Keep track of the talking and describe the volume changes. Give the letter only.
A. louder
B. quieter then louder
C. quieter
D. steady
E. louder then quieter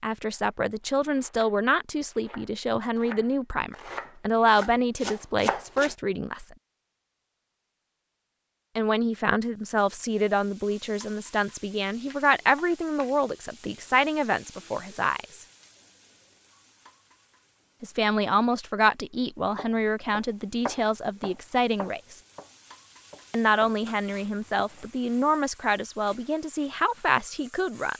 D.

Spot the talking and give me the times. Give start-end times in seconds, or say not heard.
0.0-6.5, 8.8-15.4, 17.8-22.2, 23.3-27.9.